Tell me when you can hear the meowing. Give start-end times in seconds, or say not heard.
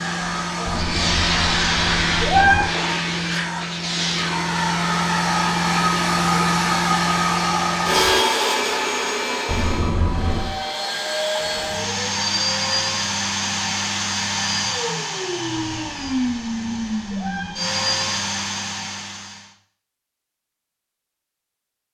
0.7-2.6, 9.4-10.6, 15.8-17.6.